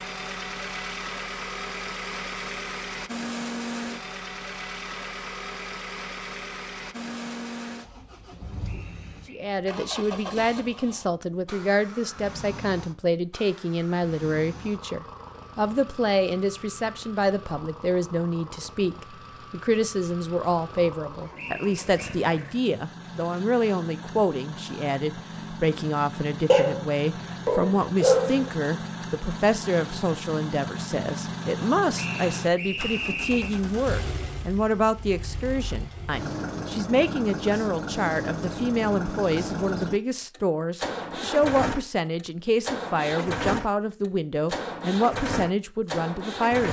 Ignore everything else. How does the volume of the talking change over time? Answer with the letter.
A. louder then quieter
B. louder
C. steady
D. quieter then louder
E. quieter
C.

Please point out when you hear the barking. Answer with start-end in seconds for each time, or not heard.
26.4-28.5.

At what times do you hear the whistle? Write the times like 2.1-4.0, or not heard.
8.7-9.6, 21.4-22.2, 31.9-33.6.